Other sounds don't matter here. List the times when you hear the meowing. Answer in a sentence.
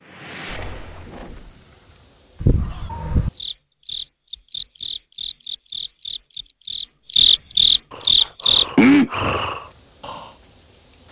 The meowing can be heard from 2.4 to 3.3 s.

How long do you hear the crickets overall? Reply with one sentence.
You can hear the crickets for 11 seconds altogether.